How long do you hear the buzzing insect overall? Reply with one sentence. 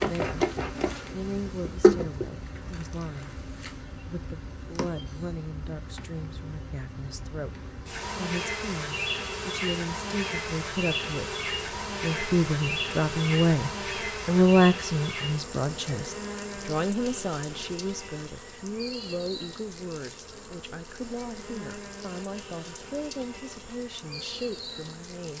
The buzzing insect can be heard for 25 seconds in total.